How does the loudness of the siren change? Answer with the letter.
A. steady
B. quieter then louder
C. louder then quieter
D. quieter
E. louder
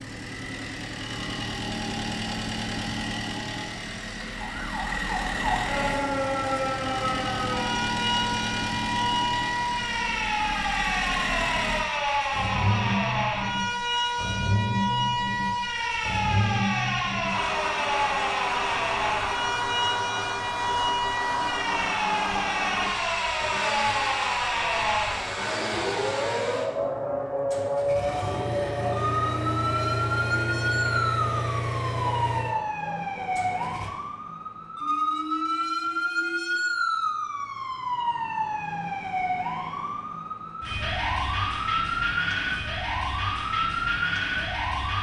A.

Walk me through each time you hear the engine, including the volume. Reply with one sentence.
The engine can be heard from 0.0 to 33.9 s, at a steady volume.